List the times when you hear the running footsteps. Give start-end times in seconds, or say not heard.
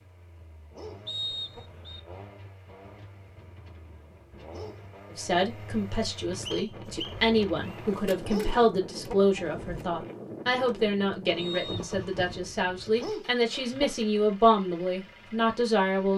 not heard.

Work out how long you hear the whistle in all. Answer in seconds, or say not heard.
3 s.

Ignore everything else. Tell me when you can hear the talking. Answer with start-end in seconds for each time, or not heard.
5.1-16.1.